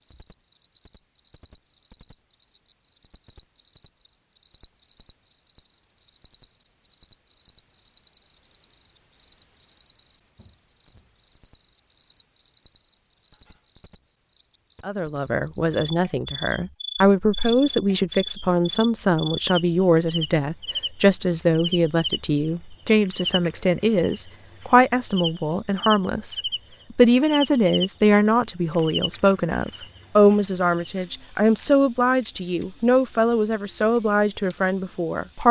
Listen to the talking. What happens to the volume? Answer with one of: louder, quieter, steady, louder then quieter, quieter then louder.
steady.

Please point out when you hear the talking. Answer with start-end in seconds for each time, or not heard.
14.8-35.4.